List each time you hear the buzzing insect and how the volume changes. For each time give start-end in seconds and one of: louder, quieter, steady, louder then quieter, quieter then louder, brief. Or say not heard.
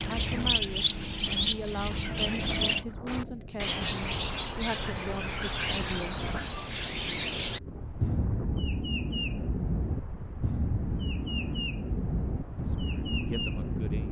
not heard.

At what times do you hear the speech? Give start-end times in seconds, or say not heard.
0.1-6.2, 12.6-14.0.